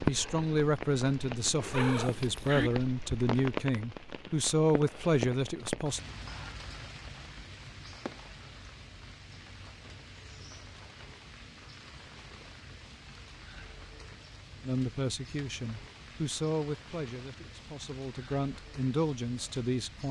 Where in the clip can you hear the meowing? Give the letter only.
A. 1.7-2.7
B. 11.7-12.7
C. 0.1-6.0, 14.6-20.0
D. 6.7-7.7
A.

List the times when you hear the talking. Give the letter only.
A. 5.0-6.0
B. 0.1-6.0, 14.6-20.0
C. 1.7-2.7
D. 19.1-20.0
B.